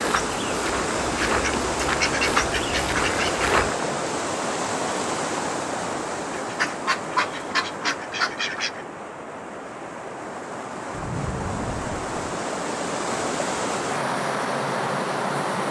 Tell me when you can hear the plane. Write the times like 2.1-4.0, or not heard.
not heard.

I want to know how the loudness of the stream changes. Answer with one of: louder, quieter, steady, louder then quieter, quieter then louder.
quieter then louder.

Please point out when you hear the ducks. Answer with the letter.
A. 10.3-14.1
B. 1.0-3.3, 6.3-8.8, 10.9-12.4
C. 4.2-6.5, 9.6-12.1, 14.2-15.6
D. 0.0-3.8
B.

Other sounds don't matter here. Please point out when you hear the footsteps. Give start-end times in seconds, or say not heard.
0.0-3.8.